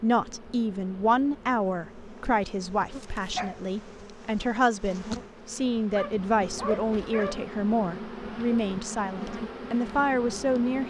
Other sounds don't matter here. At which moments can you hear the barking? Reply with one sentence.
You can hear the barking from 2.9 to 3.6 s and from 5.9 to 7.4 s.